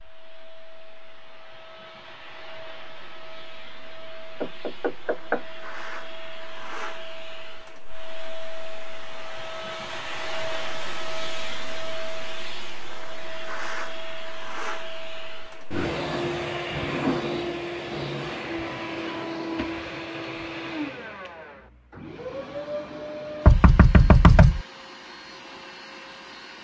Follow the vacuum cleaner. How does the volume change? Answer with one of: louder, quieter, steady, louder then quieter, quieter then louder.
louder then quieter.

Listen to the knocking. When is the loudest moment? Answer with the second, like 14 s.
24 s.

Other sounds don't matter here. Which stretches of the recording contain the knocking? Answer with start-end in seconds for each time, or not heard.
4.4-5.4, 23.4-24.6.